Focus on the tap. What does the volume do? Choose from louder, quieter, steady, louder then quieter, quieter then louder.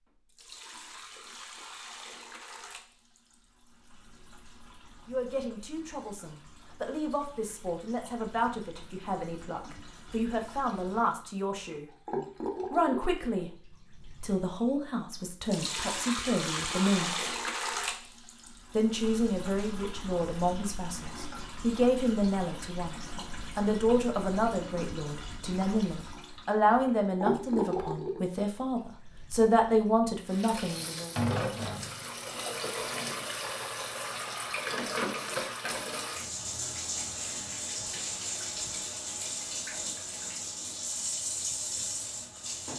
louder.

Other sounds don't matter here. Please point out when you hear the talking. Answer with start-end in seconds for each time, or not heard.
5.0-11.9, 12.7-13.6, 14.2-17.3, 18.7-31.1.